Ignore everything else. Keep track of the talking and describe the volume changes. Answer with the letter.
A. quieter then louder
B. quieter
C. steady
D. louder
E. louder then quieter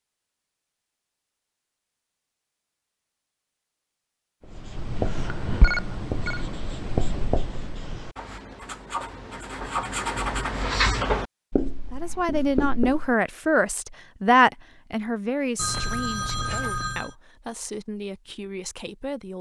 B.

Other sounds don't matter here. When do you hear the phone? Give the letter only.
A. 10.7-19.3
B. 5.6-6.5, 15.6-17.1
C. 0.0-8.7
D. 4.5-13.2
B.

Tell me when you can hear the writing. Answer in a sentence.
You can hear the writing from 4.5 to 13.2 s.